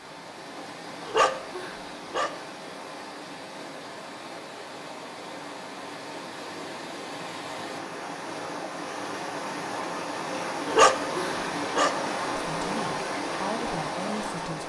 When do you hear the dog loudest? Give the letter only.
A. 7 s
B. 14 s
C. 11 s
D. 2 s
C.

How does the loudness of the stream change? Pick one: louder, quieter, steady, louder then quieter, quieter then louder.
louder.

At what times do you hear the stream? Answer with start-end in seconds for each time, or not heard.
0.0-14.6.